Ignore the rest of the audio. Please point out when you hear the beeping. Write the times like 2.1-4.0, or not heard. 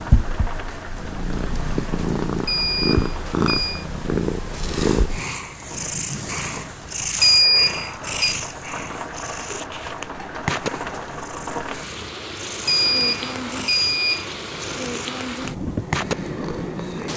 2.5-3.9, 7.2-8.3, 12.7-14.2.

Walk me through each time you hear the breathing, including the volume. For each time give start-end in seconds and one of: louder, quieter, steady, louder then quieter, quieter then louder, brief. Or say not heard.
not heard.